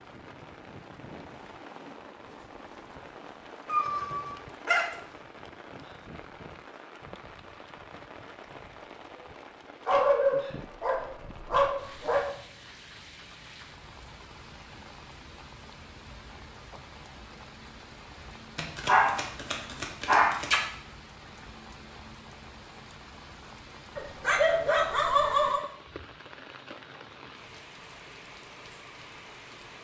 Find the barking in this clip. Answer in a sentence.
You can hear the barking from 3.7 to 4.8 s, from 9.8 to 12.2 s, from 18.6 to 20.6 s and from 23.9 to 25.6 s.